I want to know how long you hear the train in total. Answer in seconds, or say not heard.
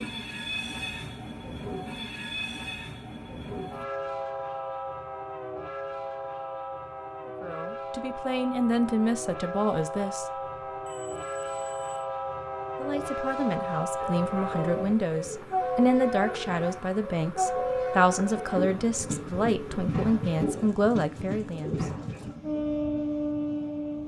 24 s.